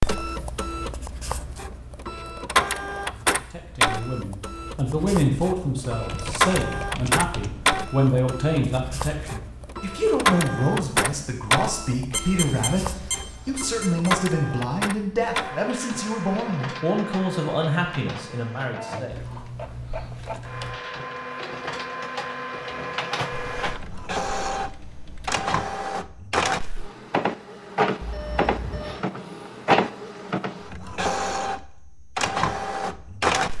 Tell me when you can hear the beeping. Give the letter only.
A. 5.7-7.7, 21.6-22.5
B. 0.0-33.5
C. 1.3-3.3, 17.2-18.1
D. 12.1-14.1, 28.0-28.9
D.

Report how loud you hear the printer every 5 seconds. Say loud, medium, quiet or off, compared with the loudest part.
loud, loud, loud, medium, medium, loud, loud.